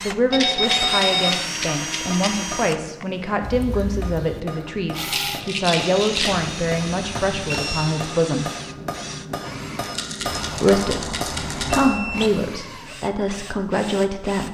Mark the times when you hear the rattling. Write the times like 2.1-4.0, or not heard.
0.3-2.3, 5.0-6.4, 9.8-11.8.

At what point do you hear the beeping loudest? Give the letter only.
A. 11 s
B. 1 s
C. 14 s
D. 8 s
B.